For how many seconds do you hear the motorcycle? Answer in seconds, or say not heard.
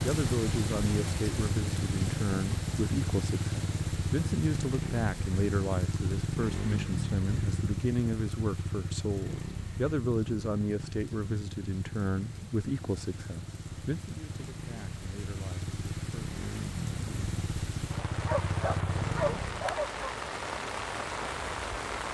20 s.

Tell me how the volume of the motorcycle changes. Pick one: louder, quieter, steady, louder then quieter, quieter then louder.
quieter then louder.